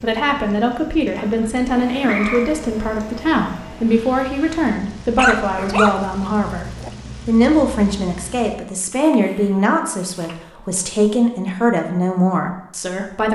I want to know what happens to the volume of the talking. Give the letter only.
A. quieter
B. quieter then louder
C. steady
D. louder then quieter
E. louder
C.